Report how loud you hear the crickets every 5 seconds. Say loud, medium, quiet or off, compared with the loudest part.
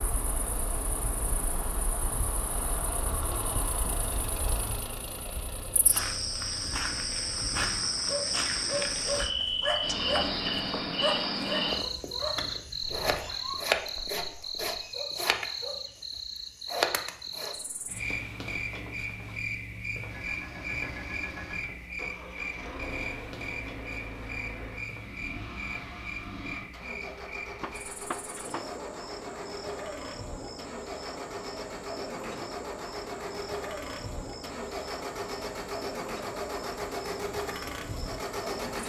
medium, loud, loud, loud, medium, medium, medium, medium.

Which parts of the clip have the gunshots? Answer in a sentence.
The gunshots can be heard from 27.6 to 28.8 s.